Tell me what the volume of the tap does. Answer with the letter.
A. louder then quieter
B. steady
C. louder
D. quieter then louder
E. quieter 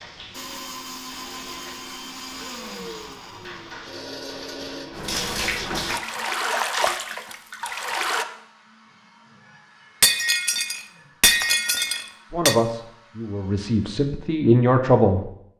C.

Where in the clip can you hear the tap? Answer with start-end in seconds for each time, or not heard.
0.0-8.2.